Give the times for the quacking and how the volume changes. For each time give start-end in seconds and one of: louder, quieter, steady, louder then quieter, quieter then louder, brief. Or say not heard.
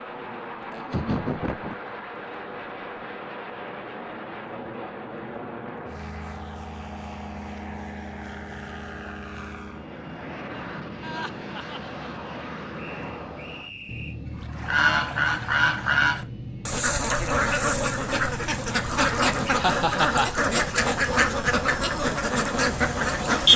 14.4-23.5 steady.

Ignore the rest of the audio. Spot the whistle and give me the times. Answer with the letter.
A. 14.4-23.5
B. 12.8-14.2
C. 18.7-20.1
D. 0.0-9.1
B.